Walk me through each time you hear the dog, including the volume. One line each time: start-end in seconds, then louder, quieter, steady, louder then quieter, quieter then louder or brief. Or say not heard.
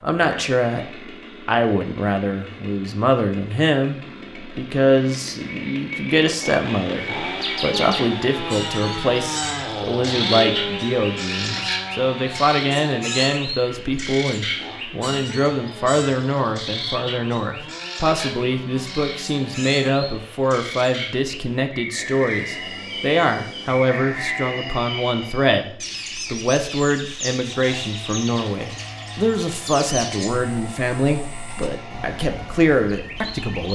not heard.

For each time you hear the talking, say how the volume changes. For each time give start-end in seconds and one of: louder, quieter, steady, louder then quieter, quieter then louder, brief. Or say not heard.
0.0-0.8 brief
1.4-33.7 steady.